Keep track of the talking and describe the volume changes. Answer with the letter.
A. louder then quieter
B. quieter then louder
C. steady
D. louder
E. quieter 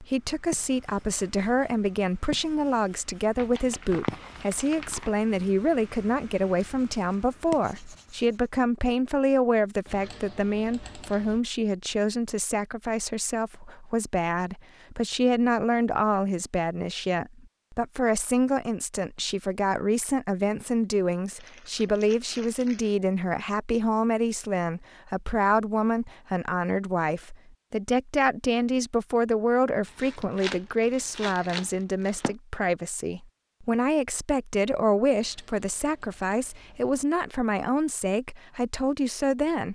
C.